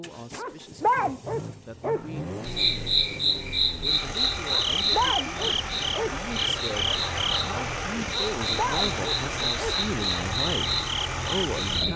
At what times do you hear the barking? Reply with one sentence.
The barking can be heard from 0.3 to 2.2 s, from 4.5 to 6.2 s and from 8.1 to 9.8 s.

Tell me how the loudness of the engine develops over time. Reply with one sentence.
The volume of the engine goes up.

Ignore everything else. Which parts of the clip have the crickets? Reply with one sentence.
You can hear the crickets from 2.5 to 11.9 s.